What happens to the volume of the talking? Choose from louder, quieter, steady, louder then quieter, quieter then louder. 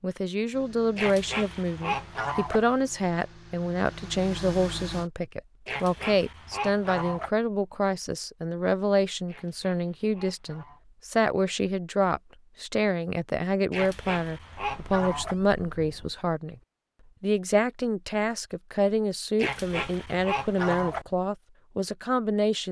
steady.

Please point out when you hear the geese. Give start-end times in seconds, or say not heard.
0.9-2.6, 5.7-7.3, 9.2-10.8, 13.7-15.3, 19.4-21.1.